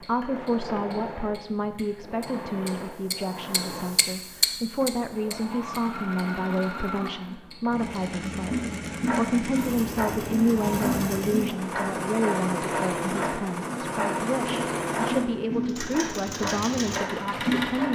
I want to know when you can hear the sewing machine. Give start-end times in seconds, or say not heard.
0.0-17.9.